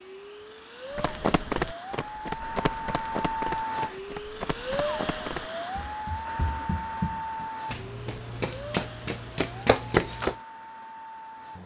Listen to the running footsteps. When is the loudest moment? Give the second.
10 s.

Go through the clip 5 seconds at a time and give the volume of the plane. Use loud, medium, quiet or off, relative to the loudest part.
loud, loud, medium.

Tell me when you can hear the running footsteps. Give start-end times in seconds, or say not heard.
0.9-10.3.